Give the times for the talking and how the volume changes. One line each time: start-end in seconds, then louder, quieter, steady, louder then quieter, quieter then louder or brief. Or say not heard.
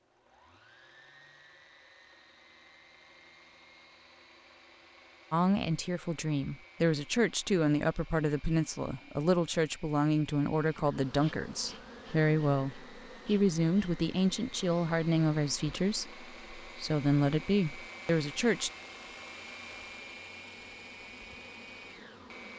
5.3-18.7 steady.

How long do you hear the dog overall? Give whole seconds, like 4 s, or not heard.
not heard.